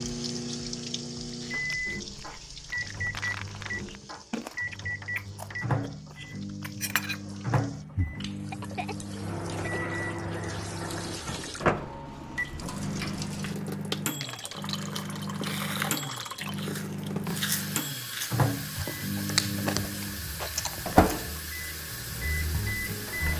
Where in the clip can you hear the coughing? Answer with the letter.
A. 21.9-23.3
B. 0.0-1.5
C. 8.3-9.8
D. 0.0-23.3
C.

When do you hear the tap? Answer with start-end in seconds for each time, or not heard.
0.0-23.3.